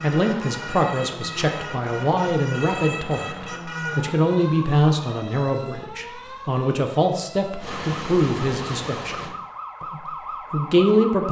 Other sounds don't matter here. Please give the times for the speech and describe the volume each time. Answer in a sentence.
The speech can be heard from 0.0 to 11.2 s, at a steady volume.